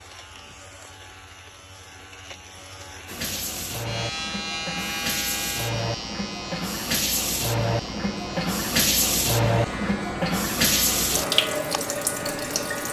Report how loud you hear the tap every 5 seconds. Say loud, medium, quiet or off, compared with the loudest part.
medium, loud, loud.